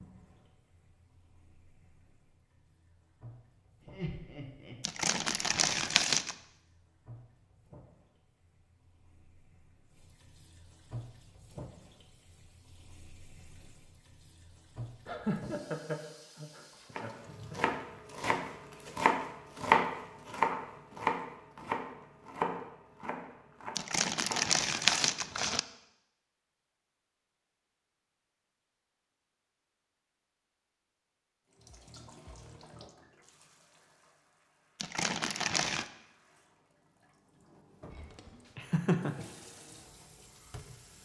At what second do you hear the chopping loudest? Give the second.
20 s.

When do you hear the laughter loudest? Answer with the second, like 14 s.
39 s.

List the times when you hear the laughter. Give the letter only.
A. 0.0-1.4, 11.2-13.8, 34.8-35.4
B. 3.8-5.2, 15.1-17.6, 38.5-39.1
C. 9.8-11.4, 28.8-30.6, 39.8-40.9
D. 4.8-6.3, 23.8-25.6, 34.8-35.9
B.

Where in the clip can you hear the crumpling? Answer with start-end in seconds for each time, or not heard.
4.8-6.3, 23.8-25.6, 34.8-35.9.